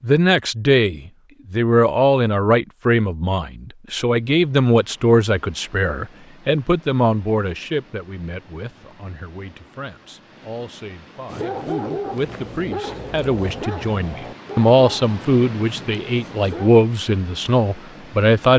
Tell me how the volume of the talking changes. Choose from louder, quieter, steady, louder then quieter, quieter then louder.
quieter then louder.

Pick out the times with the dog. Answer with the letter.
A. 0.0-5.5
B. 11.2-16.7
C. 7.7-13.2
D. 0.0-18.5
B.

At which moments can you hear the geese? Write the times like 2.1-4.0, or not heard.
not heard.